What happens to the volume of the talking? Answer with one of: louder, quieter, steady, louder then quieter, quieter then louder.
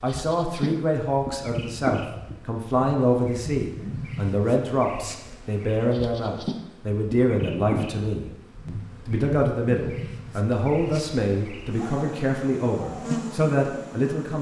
steady.